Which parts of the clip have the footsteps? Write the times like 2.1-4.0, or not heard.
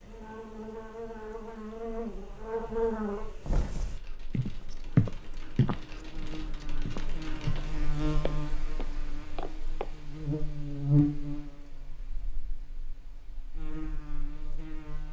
3.5-9.8.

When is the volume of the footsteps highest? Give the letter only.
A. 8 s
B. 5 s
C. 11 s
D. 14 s
B.